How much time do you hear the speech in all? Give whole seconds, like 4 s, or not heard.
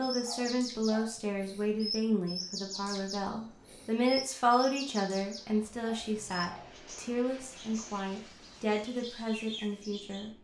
10 s.